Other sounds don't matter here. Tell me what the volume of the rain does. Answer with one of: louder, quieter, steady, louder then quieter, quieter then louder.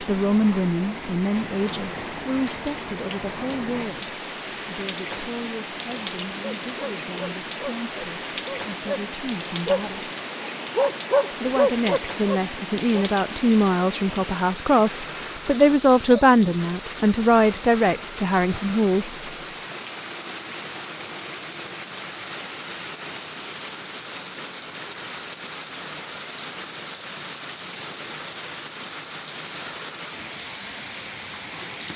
steady.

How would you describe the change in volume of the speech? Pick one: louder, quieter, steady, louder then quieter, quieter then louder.
quieter then louder.